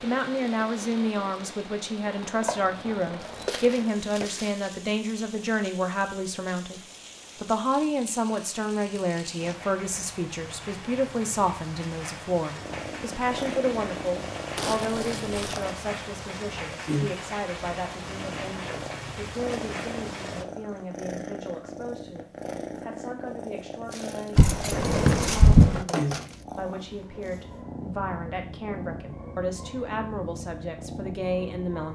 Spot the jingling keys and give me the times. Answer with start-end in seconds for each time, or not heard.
2.5-3.5, 24.4-25.9.